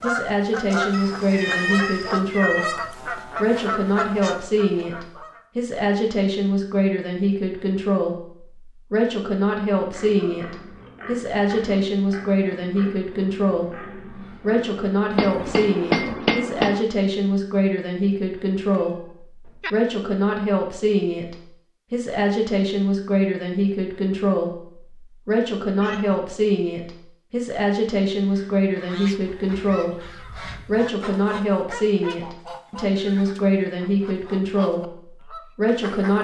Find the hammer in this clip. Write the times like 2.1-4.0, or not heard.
15.2-16.9.